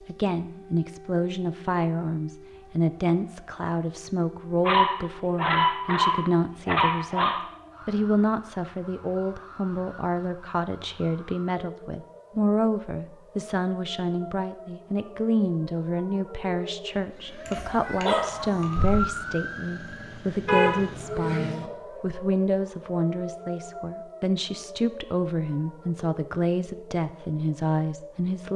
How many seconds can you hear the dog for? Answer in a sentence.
The dog can be heard for 4 seconds in total.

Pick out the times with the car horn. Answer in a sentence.
You can hear the car horn from 20.4 to 21.6 s.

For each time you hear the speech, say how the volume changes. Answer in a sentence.
The speech can be heard from 0.1 to 28.5 s, at a steady volume.